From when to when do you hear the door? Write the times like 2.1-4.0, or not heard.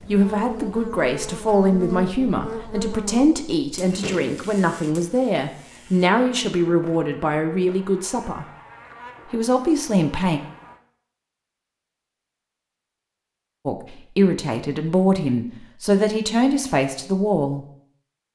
3.9-4.5.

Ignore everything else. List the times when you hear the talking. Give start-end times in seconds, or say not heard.
0.1-8.4, 9.3-10.4, 13.7-17.6.